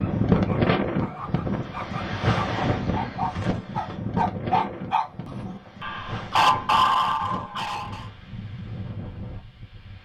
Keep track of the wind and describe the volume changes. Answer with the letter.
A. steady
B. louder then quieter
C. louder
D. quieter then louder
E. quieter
E.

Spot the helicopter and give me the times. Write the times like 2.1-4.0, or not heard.
not heard.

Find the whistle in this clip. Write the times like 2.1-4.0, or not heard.
not heard.